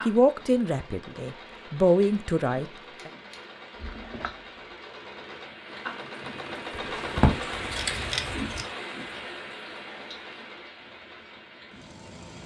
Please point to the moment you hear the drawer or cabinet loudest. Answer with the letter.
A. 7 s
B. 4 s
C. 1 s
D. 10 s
A.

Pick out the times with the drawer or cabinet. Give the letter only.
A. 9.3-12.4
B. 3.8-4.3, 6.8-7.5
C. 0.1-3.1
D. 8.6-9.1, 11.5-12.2
B.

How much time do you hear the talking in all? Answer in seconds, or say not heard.
3 s.